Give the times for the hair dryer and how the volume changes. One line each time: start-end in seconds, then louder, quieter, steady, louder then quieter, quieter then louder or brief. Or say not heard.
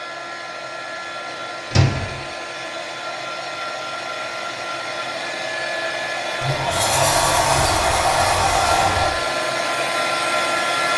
0.0-10.9 louder.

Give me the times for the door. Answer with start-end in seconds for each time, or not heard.
1.7-2.2, 6.4-9.2.